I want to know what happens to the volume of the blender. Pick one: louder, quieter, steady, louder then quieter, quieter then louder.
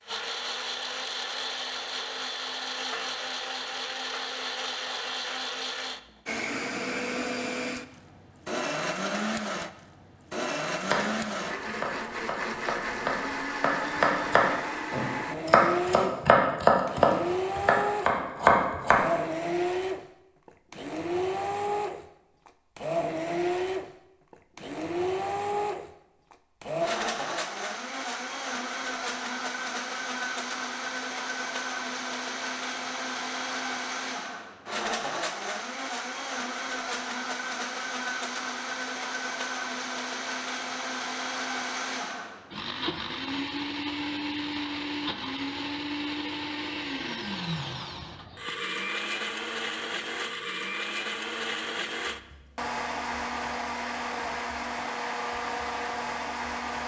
steady.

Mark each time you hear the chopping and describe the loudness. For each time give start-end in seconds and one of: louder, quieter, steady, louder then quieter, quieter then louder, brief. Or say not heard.
10.8-19.1 louder.